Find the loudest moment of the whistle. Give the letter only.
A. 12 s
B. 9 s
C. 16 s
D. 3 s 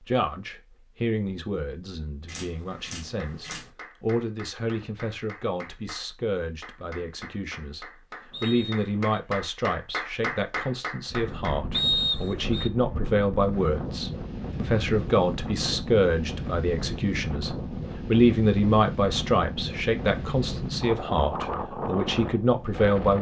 A.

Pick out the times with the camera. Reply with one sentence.
The camera can be heard from 2.2 to 3.7 s.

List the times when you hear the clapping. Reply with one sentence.
The clapping can be heard from 2.7 to 11.8 s.